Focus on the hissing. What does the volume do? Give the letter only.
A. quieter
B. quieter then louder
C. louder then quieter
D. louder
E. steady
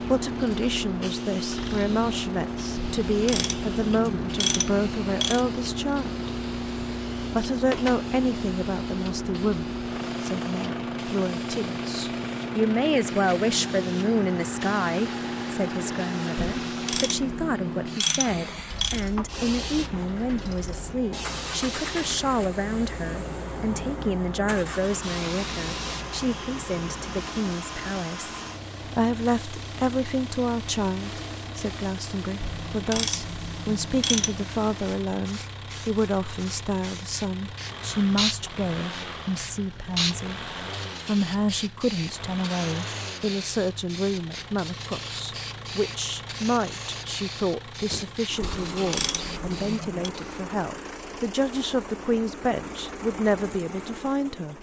A.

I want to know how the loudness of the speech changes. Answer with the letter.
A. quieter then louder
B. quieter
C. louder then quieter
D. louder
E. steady
E.